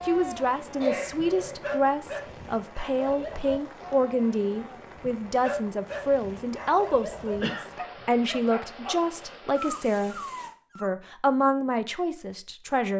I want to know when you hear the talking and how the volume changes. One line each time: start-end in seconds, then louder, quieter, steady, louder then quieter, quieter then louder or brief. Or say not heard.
0.1-10.2 steady
10.8-12.9 brief.